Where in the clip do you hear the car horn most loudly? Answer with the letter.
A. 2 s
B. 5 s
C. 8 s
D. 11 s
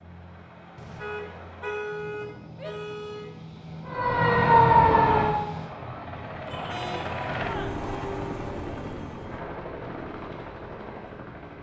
A.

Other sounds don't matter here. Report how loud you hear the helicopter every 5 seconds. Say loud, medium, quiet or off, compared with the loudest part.
medium, loud, medium.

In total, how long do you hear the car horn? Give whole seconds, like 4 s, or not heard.
3 s.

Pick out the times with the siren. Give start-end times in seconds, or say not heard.
3.9-5.8.